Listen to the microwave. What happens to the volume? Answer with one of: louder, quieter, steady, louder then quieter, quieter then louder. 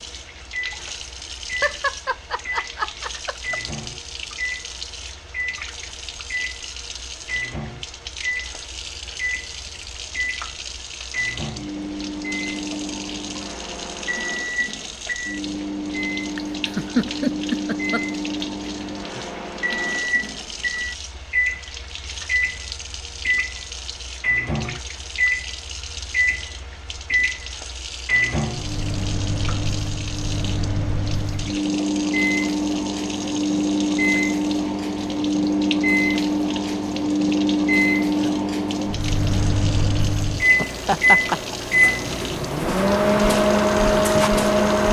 louder.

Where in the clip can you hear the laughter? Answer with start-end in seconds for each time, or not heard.
1.6-3.6, 16.4-18.4, 40.5-41.5.